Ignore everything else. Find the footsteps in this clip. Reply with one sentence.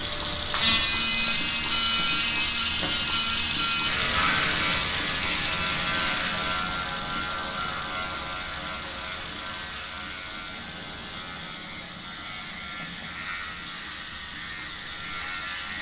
You can't hear the footsteps here.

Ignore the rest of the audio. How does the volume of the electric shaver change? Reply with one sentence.
The loudness of the electric shaver goes down.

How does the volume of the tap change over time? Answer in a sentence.
The loudness of the tap goes down.